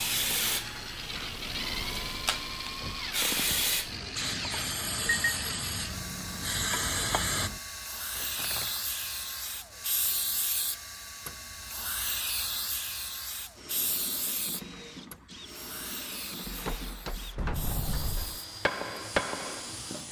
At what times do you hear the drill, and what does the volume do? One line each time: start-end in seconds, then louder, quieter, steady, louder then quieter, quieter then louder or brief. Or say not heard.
0.0-20.0 quieter.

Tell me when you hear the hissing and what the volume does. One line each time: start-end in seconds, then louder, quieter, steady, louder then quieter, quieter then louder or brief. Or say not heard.
0.0-20.0 quieter.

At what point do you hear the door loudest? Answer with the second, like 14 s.
18 s.